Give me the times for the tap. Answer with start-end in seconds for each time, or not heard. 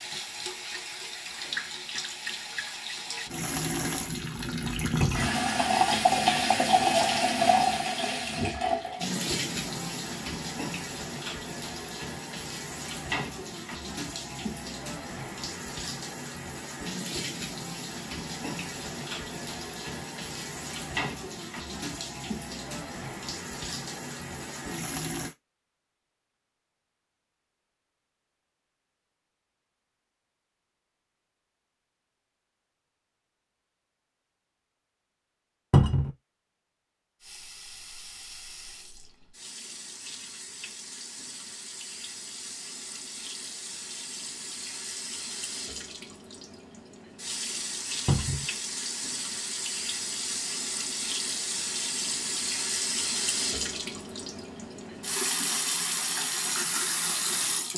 0.0-25.4, 37.2-57.7.